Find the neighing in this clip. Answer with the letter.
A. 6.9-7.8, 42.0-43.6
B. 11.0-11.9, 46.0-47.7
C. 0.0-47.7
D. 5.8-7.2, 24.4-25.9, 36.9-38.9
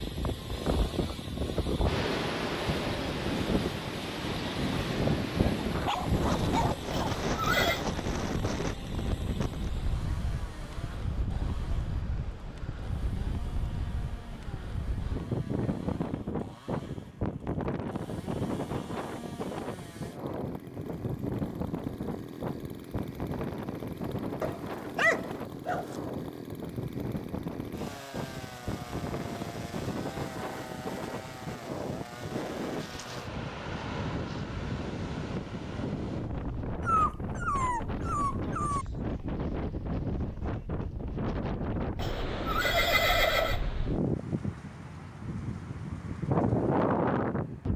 A.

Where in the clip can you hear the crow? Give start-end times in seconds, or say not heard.
not heard.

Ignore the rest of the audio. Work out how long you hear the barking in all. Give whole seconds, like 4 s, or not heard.
5 s.